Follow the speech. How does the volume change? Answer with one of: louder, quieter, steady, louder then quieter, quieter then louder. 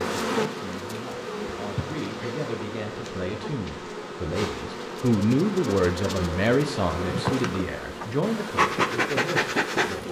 louder then quieter.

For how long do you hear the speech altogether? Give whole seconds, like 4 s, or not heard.
10 s.